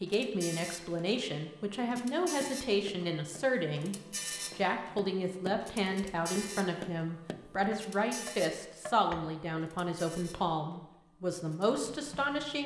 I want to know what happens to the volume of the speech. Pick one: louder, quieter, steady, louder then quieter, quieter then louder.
steady.